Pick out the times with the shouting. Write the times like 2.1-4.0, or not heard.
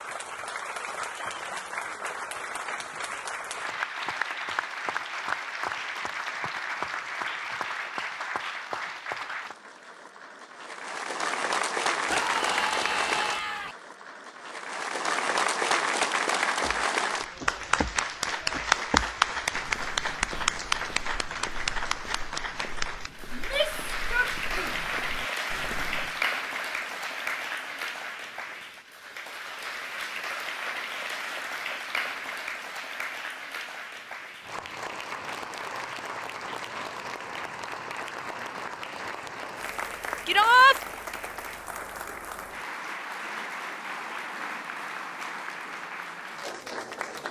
12.1-13.8, 23.3-24.9, 40.2-40.8.